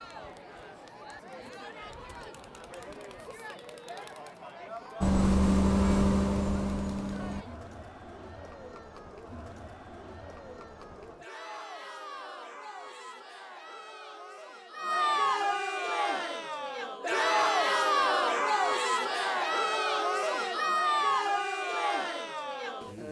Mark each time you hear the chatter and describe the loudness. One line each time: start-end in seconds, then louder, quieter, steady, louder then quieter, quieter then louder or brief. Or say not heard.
0.0-23.0 louder.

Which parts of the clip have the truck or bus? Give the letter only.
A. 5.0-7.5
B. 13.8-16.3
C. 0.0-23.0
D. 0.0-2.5
A.